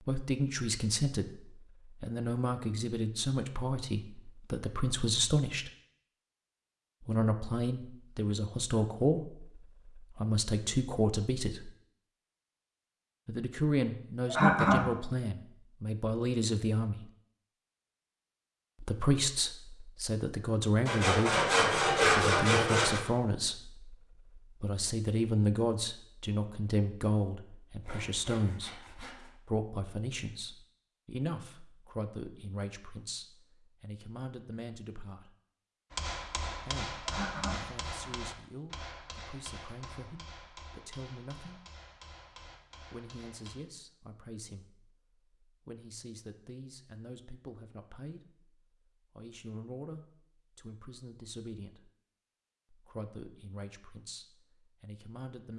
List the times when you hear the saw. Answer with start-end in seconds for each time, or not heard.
20.9-23.0, 27.8-29.4.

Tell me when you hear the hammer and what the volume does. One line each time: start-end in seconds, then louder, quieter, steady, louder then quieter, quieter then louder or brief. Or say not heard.
35.9-43.5 quieter.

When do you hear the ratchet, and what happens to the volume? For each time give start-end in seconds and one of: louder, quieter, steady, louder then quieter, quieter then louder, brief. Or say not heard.
not heard.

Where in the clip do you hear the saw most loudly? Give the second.
22 s.